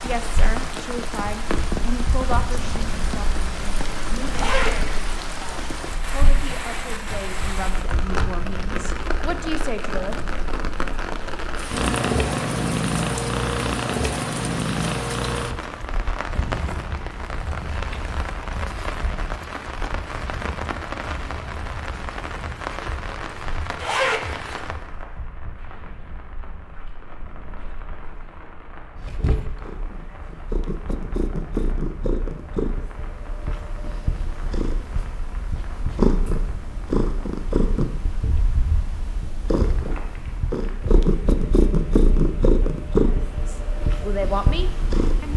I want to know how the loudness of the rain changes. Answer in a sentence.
The volume of the rain goes down.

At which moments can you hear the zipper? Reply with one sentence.
You can hear the zipper from 4.3 to 5.1 s and from 23.8 to 24.4 s.